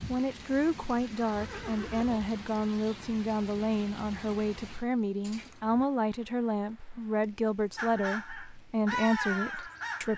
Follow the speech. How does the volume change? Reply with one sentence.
The loudness of the speech stays about the same.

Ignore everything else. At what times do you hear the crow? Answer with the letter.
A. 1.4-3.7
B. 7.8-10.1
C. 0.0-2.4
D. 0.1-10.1
B.